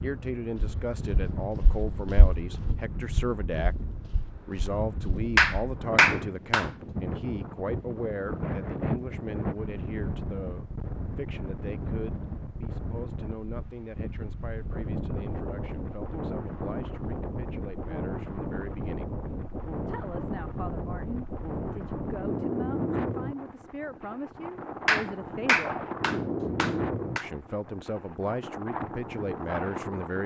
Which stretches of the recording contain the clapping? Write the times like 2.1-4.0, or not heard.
5.3-6.7, 24.9-27.2.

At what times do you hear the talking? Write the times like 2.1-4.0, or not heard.
0.0-19.1, 19.9-25.8, 27.2-30.2.